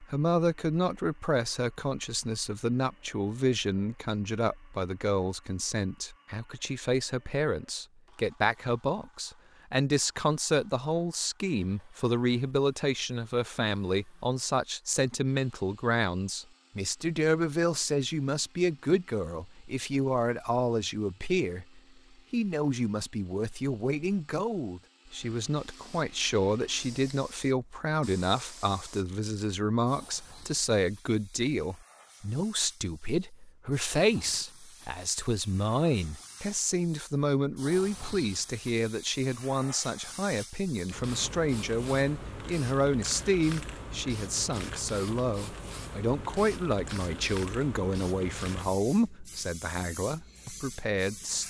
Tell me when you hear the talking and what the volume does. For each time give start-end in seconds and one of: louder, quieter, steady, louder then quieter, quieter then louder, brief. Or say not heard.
0.0-51.4 steady.